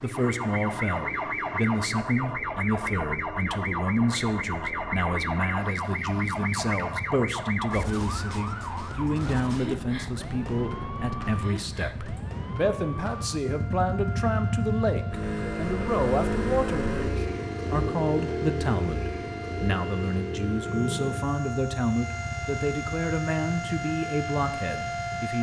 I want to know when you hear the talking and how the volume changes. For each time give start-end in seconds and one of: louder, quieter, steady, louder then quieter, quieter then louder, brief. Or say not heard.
0.0-25.3 steady.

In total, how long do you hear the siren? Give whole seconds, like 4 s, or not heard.
25 s.